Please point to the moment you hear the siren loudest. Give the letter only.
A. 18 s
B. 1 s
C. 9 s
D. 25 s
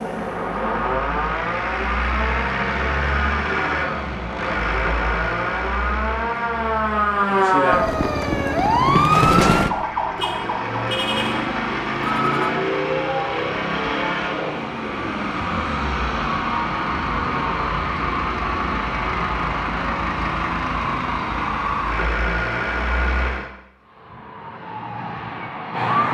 C.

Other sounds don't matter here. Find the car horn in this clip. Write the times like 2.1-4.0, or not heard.
10.2-12.6.